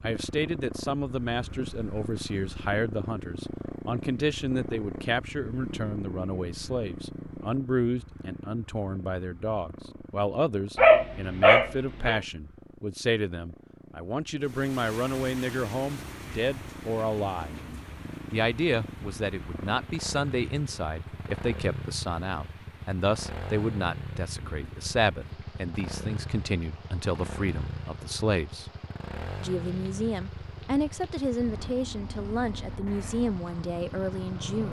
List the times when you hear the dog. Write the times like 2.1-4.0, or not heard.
10.8-12.2.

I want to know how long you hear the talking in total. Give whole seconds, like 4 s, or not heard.
33 s.